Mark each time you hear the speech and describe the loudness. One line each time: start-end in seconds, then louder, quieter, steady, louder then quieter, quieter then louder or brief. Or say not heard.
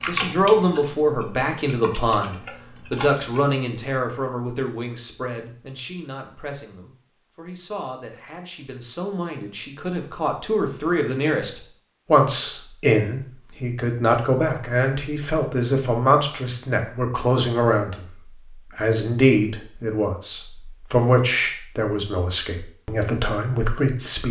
0.0-24.2 quieter then louder.